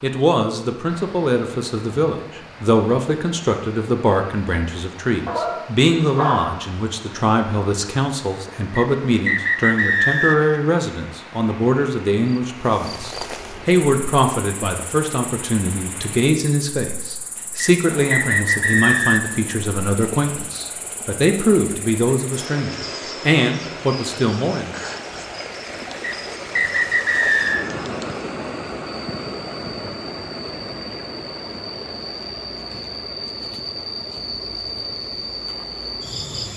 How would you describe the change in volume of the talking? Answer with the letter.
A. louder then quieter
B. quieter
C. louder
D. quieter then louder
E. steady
E.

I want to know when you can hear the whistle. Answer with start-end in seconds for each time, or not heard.
8.8-10.6, 17.6-19.4, 26.0-27.6.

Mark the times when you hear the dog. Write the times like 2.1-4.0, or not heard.
5.2-6.7.